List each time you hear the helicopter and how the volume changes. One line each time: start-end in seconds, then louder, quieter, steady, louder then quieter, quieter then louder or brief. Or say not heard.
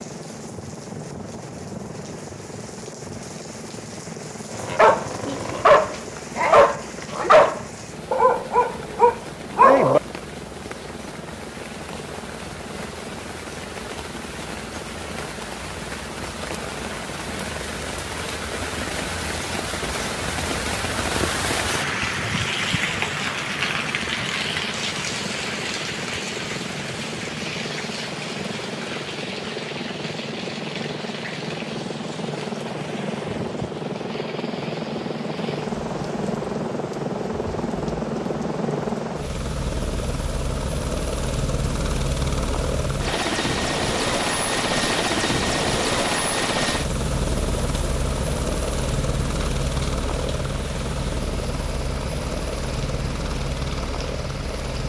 0.0-54.8 louder.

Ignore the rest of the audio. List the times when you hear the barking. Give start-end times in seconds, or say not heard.
4.5-10.0.